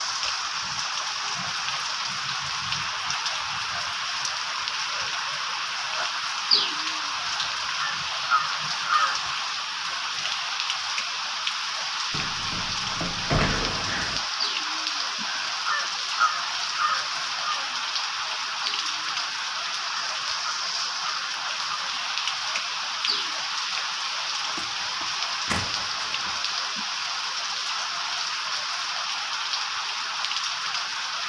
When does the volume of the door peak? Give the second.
13 s.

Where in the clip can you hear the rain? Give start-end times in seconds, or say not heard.
0.0-31.2.